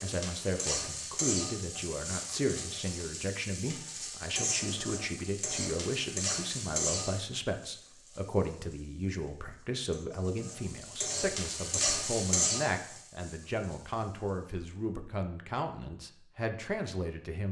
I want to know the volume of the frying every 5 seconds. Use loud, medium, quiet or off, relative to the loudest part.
loud, loud, loud, off.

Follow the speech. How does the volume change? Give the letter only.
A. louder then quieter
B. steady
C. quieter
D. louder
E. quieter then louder
B.